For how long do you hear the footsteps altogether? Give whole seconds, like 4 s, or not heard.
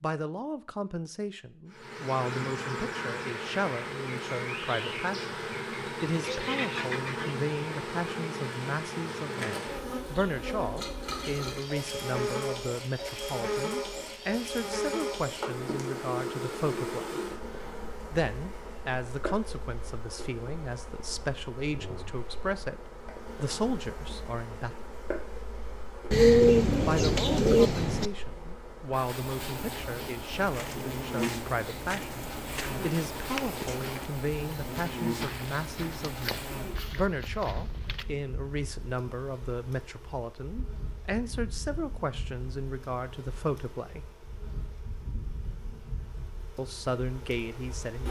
8 s.